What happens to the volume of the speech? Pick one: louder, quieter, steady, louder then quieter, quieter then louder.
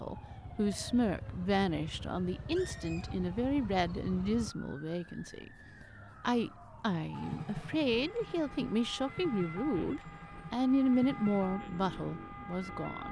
steady.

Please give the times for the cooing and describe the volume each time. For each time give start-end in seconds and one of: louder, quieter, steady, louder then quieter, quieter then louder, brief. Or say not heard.
not heard.